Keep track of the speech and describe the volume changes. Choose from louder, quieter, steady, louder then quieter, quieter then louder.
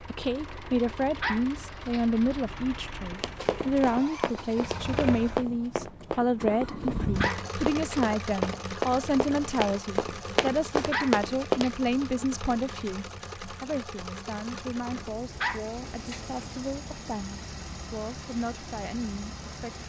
quieter.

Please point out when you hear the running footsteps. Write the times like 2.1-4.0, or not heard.
3.2-11.7.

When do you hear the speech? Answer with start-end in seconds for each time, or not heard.
0.0-19.8.